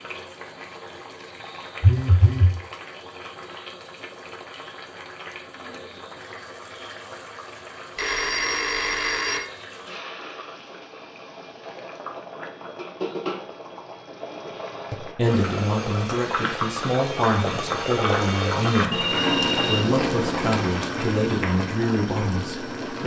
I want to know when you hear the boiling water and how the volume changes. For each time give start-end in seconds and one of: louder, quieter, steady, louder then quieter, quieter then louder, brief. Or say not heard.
0.0-23.0 louder.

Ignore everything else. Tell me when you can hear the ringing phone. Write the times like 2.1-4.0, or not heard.
1.8-2.5, 8.0-9.4, 18.9-20.9.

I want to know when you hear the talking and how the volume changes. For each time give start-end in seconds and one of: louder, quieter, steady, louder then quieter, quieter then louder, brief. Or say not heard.
14.9-23.0 steady.